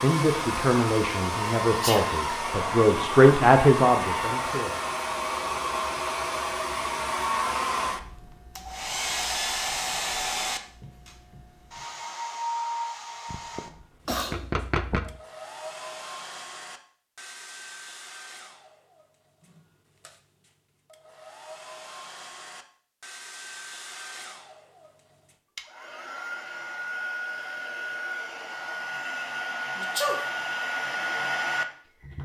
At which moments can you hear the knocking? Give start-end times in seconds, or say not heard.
13.3-15.2.